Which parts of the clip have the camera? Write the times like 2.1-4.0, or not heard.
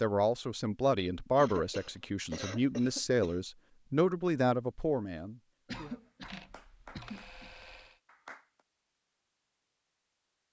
1.9-2.5, 6.2-8.0.